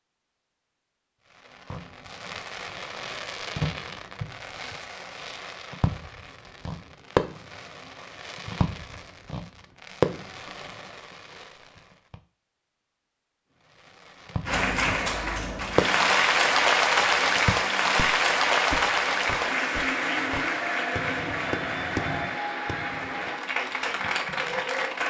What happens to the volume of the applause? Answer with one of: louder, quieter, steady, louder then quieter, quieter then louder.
quieter.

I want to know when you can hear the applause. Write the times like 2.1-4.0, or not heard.
14.4-25.0.